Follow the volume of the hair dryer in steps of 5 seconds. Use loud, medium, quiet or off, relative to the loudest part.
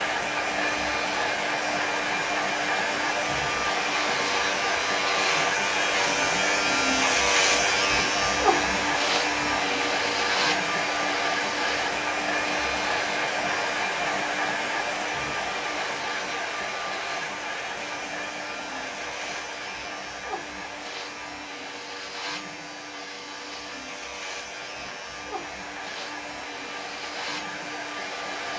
loud, loud, loud, medium, quiet, medium.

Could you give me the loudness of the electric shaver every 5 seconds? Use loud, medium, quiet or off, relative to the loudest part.
medium, loud, medium, quiet, quiet, quiet.